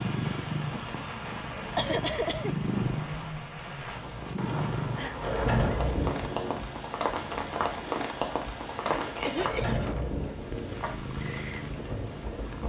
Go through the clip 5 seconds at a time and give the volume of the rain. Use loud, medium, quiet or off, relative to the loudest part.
medium, loud, medium.